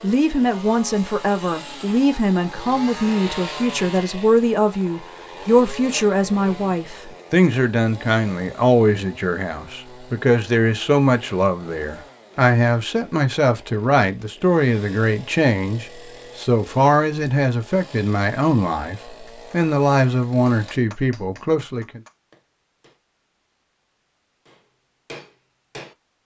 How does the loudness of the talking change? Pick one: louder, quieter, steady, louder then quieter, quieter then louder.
steady.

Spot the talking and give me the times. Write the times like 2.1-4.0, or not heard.
0.0-22.0.